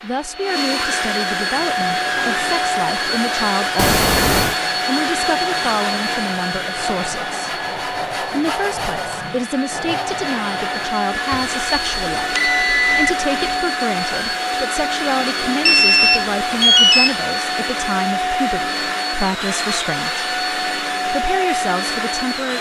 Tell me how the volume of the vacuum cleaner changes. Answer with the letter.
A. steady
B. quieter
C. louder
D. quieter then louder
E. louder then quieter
A.